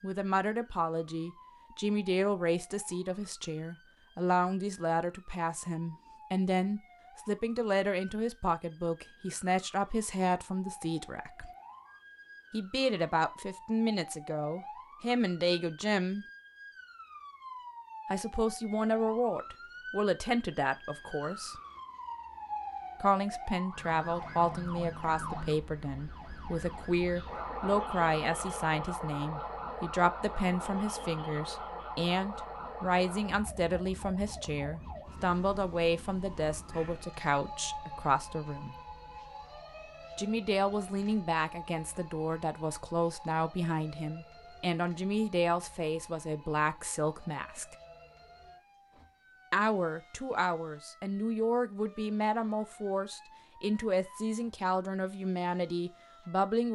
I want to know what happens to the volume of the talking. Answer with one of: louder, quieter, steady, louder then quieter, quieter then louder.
steady.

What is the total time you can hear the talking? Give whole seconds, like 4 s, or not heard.
49 s.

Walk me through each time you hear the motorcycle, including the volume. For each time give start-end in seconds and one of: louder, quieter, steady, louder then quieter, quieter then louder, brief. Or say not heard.
not heard.